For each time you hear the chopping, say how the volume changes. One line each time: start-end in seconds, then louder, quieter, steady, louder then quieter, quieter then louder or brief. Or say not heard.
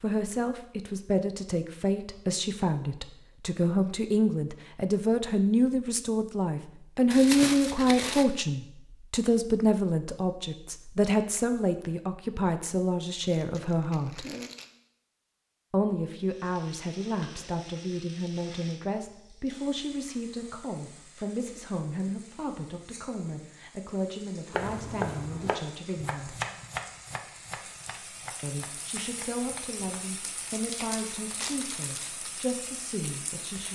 24.5-30.1 quieter.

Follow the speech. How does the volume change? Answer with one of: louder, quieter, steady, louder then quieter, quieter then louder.
quieter.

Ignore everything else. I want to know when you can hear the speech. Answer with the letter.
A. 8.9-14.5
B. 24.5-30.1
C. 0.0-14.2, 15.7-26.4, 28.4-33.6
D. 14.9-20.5
C.